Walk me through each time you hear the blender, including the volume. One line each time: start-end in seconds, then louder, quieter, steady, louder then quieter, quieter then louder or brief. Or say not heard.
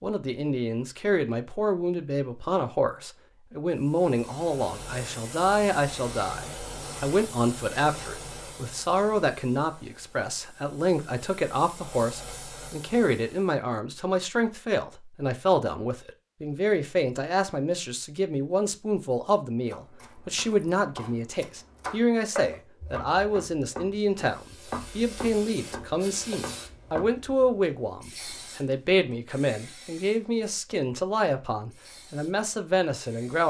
not heard.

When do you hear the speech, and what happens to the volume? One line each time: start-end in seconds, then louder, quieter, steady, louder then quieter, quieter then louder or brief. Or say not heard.
0.0-33.4 steady.